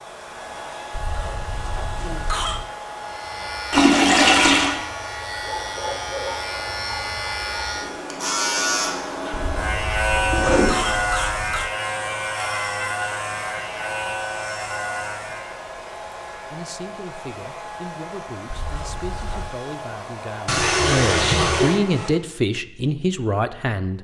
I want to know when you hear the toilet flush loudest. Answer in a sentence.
The volume of the toilet flush peaks at 4 seconds.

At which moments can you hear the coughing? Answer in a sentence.
You can hear the coughing from 0.9 to 2.7 s, from 9.3 to 11.7 s and from 18.5 to 19.6 s.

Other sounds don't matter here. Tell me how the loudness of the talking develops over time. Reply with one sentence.
The volume of the talking goes up.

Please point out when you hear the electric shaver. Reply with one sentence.
You can hear the electric shaver from 3.0 to 15.6 s.